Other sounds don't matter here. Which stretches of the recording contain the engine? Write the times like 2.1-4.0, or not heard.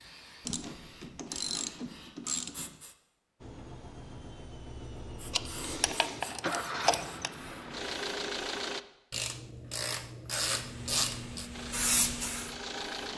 3.4-8.8, 11.5-13.1.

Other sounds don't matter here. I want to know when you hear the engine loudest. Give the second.
8 s.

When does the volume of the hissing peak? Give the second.
12 s.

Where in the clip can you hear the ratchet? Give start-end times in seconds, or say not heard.
0.4-2.8, 5.3-7.3, 9.1-11.5.